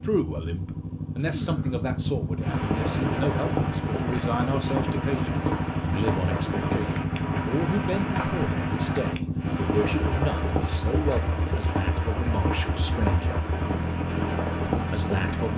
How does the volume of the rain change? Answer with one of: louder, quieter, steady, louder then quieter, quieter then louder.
steady.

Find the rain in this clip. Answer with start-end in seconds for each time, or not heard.
2.4-15.5.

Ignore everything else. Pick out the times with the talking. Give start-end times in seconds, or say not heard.
0.0-13.4, 14.8-15.5.